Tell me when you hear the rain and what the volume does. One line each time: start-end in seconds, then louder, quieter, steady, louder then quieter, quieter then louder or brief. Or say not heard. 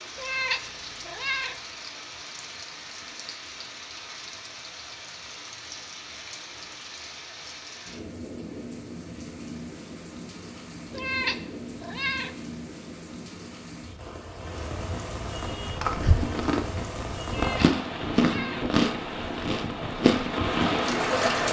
0.0-21.4 louder.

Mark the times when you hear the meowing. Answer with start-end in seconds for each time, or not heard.
0.1-1.6, 10.9-12.4, 17.2-18.7.